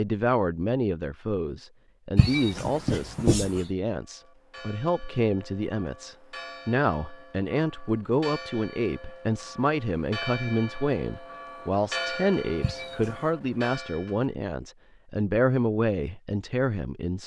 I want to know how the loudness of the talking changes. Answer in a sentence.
The loudness of the talking stays about the same.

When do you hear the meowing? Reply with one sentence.
The meowing can be heard from 2.1 to 3.6 s and from 12.6 to 13.3 s.